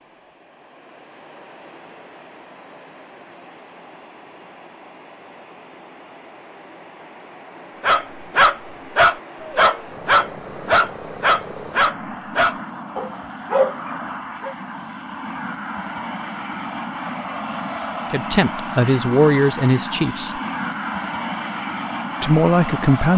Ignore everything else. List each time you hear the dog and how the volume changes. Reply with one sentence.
The dog can be heard from 7.8 to 14.6 s, getting quieter.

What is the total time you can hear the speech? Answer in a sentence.
The speech can be heard for 3 seconds in total.